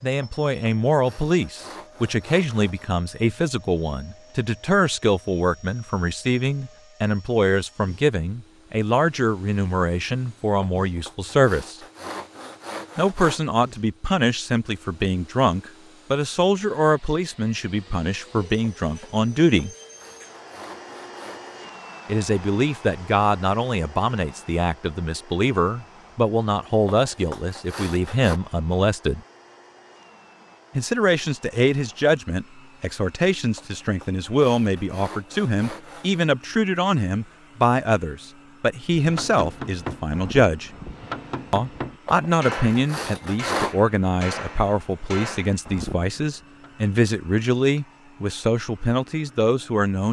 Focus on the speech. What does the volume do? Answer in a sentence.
The loudness of the speech stays about the same.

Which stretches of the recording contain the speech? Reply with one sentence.
You can hear the speech from 0.0 to 11.8 s, from 12.9 to 19.7 s, from 22.1 to 29.2 s, from 30.8 to 40.7 s and from 41.5 to 50.0 s.